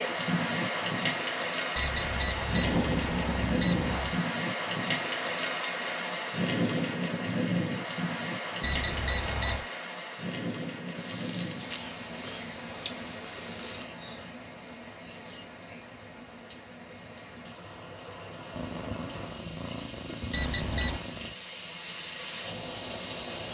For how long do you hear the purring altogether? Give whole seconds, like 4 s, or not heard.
6 s.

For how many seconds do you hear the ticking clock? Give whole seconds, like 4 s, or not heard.
not heard.